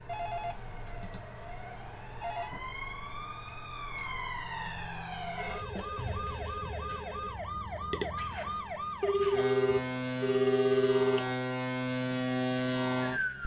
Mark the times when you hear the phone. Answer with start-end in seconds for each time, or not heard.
0.1-2.5, 5.3-7.4, 9.0-11.2.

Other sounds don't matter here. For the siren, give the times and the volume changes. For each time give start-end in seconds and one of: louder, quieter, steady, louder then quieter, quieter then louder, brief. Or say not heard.
0.0-13.4 louder.